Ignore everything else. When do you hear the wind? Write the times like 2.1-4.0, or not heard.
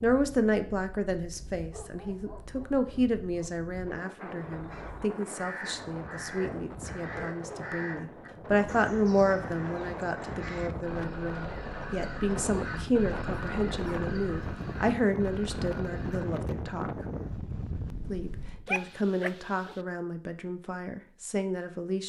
0.0-18.7.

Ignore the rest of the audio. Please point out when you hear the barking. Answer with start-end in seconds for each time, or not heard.
1.7-3.6, 6.3-7.8, 13.3-14.0, 18.6-19.8.